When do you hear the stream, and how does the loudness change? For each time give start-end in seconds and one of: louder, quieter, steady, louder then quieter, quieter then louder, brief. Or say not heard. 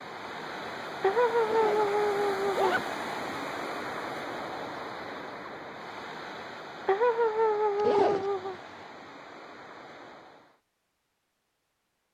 0.0-10.6 quieter.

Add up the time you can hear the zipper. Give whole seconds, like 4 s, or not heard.
2 s.